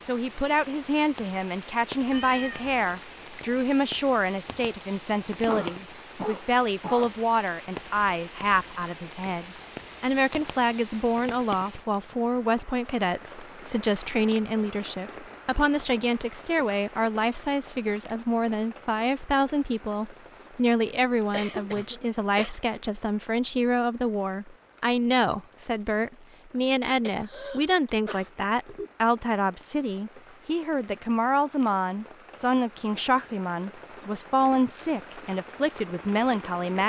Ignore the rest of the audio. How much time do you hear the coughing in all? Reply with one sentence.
You can hear the coughing for 5 seconds altogether.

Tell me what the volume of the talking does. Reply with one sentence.
The loudness of the talking stays about the same.